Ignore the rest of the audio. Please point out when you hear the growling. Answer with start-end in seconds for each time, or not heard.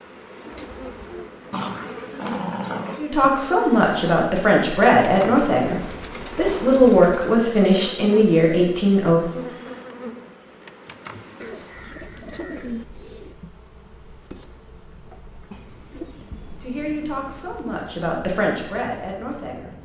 1.5-3.0.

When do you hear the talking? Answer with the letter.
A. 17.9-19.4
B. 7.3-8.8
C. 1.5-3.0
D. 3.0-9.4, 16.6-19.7
D.